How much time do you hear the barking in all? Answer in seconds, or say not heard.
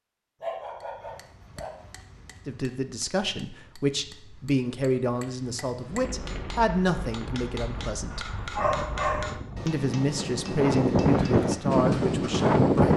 3 s.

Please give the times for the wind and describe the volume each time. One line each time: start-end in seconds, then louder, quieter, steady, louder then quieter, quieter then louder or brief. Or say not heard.
5.8-12.9 louder.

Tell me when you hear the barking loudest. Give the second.
9 s.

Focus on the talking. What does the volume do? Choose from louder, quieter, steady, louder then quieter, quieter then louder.
steady.